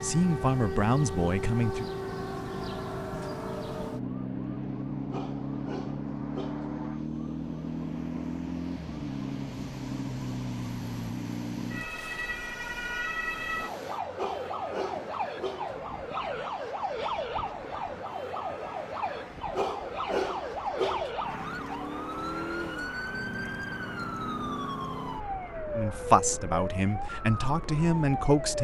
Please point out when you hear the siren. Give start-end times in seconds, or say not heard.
0.0-28.5.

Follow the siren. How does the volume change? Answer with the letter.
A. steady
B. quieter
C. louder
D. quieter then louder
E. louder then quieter
A.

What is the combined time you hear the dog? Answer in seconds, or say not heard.
5 s.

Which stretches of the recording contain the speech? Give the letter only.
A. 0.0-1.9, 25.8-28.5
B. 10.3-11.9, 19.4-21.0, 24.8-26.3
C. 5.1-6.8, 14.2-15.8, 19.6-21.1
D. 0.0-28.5
A.